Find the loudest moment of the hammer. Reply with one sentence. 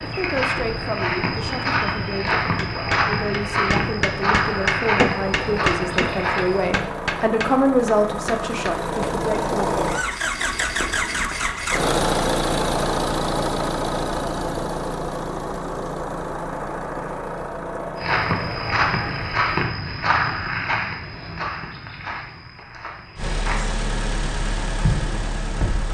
The loudest moment of the hammer is at 5 seconds.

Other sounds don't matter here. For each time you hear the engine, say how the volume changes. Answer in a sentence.
The engine can be heard from 0.0 to 19.6 s, getting louder then quieter; and briefly from 23.1 to 25.8 s.